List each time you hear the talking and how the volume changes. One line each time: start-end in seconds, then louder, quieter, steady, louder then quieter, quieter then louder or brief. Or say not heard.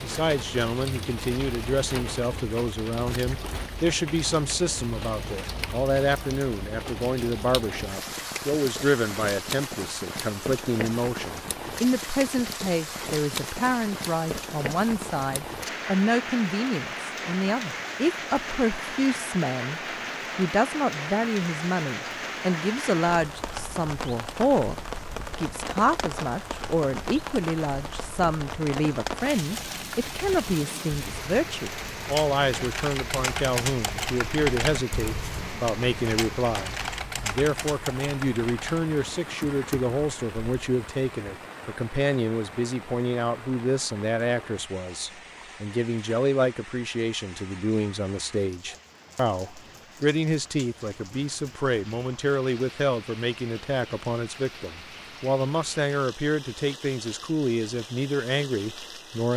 0.0-59.3 steady.